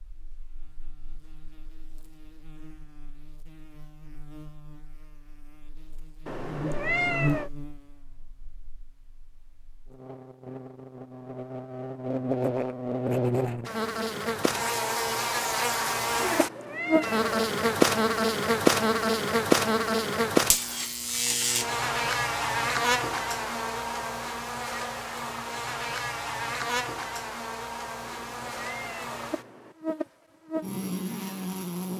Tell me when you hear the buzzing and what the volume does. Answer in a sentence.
You can hear the buzzing from 0.0 to 31.9 s, getting louder then quieter.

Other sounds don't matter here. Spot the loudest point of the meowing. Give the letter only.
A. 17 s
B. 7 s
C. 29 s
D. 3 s
B.